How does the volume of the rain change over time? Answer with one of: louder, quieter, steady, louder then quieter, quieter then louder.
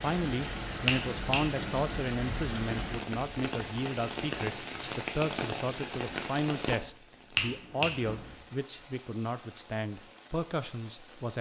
quieter.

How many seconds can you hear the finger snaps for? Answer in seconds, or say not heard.
2 s.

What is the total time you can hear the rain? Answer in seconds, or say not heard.
11 s.